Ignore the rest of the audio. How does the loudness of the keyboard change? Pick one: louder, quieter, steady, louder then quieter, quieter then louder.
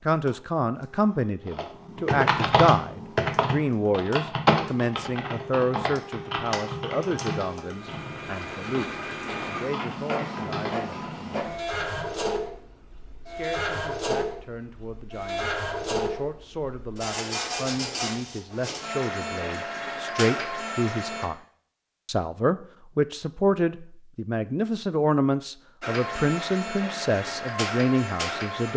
quieter.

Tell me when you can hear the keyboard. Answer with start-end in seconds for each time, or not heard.
1.4-12.3.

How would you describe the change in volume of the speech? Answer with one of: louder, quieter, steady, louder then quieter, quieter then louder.
quieter then louder.